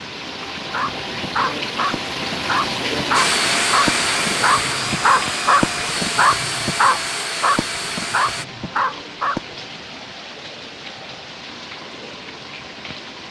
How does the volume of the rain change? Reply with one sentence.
The volume of the rain goes down.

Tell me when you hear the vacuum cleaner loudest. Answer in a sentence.
The loudest moment of the vacuum cleaner is at 4 seconds.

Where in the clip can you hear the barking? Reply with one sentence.
You can hear the barking from 0.6 to 9.8 s.